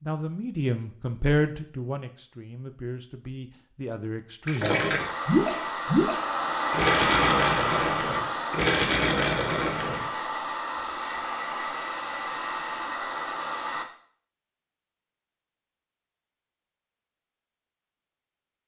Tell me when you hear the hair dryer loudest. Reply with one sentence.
The volume of the hair dryer peaks at 7 seconds.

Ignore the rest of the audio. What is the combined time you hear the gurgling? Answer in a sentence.
You can hear the gurgling for 6 seconds altogether.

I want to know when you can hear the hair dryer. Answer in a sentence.
You can hear the hair dryer from 5.0 to 13.8 s.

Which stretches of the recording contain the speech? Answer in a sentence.
The speech can be heard from 0.0 to 4.8 s.